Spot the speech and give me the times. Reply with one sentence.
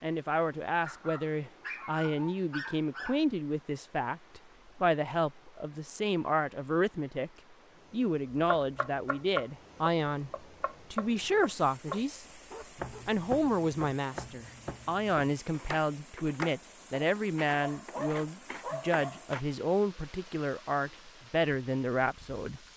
You can hear the speech from 0.0 to 7.3 s, from 7.9 to 12.2 s and from 13.1 to 22.6 s.